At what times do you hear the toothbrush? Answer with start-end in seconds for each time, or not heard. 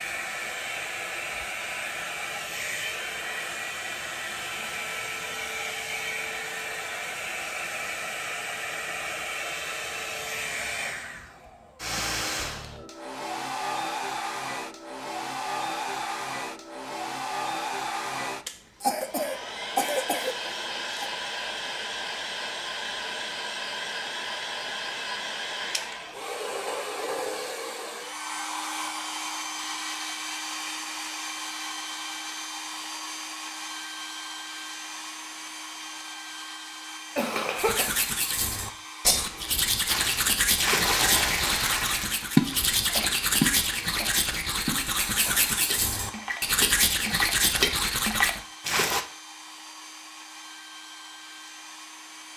37.5-48.4.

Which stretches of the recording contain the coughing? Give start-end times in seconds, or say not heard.
18.8-21.1, 37.1-38.0.